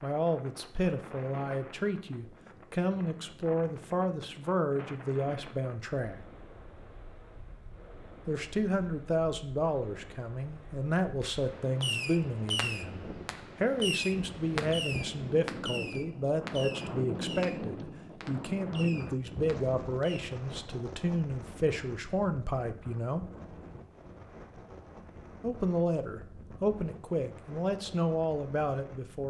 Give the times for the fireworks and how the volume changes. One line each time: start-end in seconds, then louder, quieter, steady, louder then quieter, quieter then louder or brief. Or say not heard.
11.2-20.2 quieter.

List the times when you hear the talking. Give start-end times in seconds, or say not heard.
0.0-6.2, 8.2-23.2, 25.4-29.2.